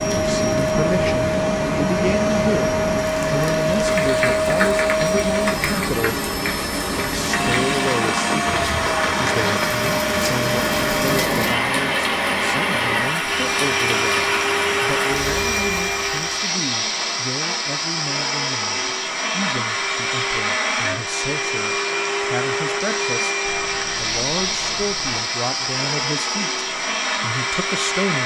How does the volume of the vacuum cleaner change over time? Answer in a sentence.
The volume of the vacuum cleaner stays about the same.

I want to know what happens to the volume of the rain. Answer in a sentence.
The loudness of the rain stays about the same.